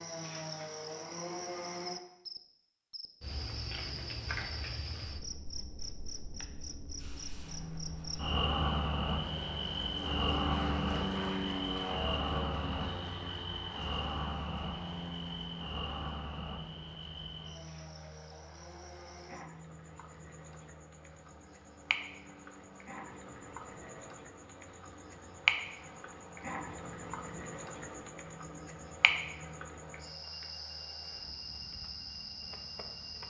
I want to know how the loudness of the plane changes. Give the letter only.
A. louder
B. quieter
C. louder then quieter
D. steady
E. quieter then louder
B.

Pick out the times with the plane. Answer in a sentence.
The plane can be heard from 7.0 to 33.2 s.